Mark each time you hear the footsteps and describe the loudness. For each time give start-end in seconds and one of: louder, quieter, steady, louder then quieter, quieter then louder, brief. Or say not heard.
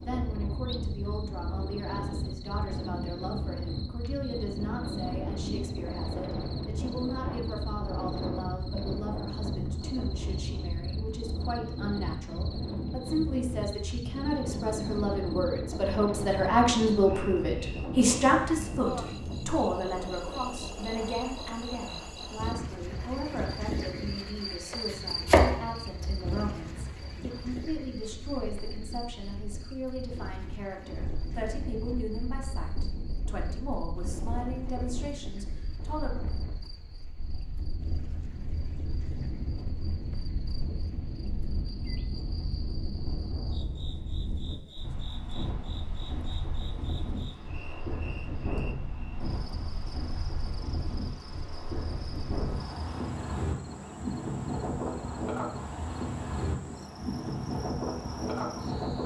not heard.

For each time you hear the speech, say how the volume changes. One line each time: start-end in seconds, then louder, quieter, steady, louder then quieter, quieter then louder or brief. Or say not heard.
0.0-36.1 louder then quieter.